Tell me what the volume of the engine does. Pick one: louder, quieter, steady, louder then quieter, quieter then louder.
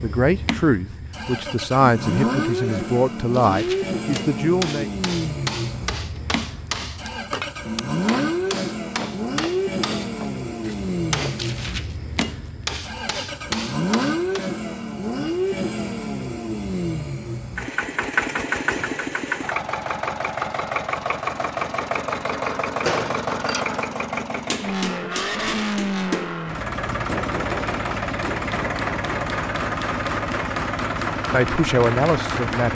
steady.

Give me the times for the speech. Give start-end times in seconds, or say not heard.
0.0-4.9, 31.3-32.6.